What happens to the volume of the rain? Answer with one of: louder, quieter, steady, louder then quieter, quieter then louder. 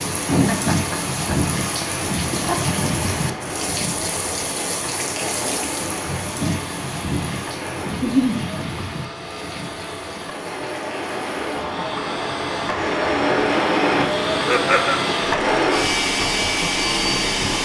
quieter.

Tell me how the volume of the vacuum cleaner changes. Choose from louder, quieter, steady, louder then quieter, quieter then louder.
louder.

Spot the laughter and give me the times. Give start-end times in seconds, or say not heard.
0.2-2.6, 7.9-8.3, 14.3-15.0.